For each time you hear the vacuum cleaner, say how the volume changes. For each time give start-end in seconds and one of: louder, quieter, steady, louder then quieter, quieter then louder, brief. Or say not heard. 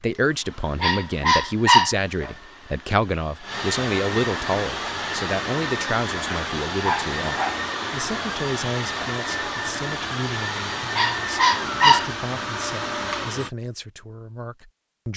0.0-13.5 louder.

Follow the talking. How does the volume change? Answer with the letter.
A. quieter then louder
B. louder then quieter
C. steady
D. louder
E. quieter
E.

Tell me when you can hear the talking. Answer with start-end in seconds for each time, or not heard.
0.0-15.1.